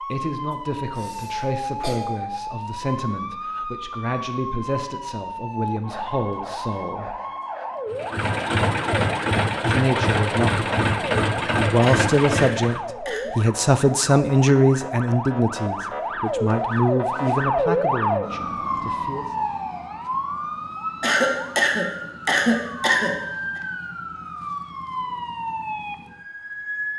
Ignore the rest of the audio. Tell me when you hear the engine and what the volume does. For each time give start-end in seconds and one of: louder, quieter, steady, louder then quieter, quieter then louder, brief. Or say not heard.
7.9-12.8 steady.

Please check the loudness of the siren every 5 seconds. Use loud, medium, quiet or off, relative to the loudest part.
medium, medium, medium, loud, medium, medium.